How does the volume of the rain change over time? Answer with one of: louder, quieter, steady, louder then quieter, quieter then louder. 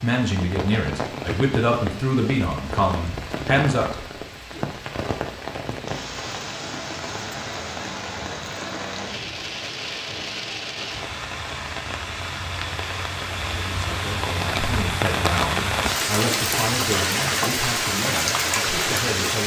louder.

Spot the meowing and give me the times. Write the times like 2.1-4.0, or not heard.
not heard.